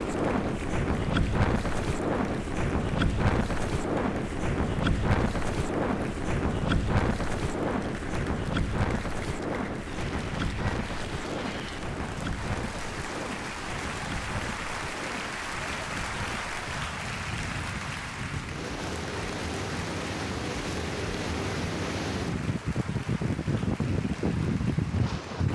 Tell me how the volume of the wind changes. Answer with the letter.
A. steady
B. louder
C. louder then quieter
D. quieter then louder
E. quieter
D.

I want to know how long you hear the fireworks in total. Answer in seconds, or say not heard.
not heard.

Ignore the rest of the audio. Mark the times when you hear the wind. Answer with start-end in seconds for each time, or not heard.
0.0-25.5.